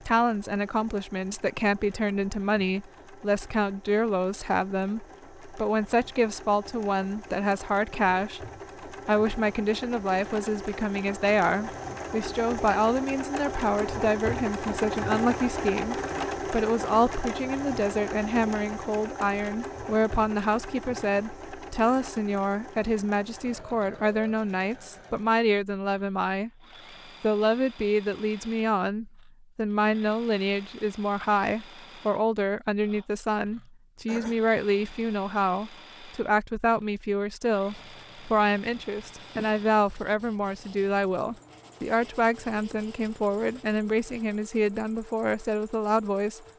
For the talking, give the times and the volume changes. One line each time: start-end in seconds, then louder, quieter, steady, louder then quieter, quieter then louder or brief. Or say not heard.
0.1-26.5 steady
27.2-46.4 steady.